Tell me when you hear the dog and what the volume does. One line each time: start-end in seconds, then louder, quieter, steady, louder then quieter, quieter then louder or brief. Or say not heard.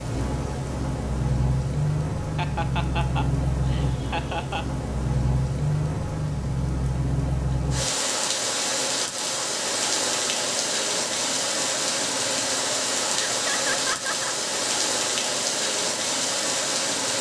not heard.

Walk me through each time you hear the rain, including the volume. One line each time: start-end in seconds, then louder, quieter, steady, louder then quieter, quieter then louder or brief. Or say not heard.
0.0-17.1 steady.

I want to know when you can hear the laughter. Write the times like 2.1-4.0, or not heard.
2.4-4.7, 13.2-14.3.